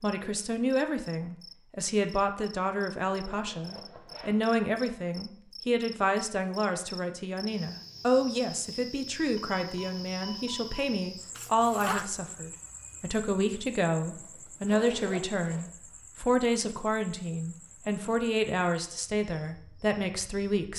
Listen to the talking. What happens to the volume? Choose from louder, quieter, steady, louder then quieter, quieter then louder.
steady.